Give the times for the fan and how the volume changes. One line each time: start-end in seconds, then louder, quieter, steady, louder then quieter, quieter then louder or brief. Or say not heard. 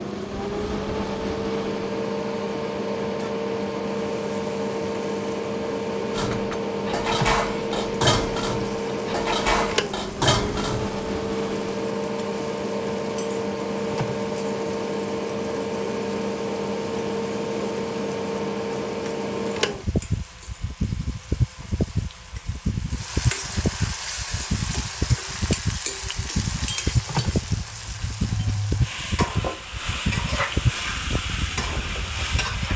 0.0-32.7 steady.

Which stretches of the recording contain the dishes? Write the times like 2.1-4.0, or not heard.
6.1-10.9.